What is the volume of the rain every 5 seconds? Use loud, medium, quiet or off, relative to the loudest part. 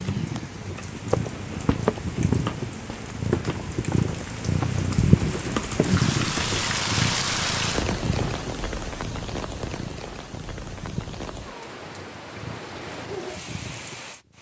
medium, loud, medium.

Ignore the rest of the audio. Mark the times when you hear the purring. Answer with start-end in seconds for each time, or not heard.
0.0-14.3.